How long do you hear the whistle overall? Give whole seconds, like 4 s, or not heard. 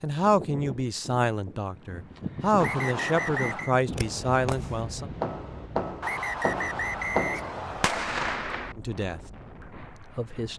3 s.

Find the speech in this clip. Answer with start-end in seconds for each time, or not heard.
0.0-5.0, 8.8-9.2, 9.8-10.5.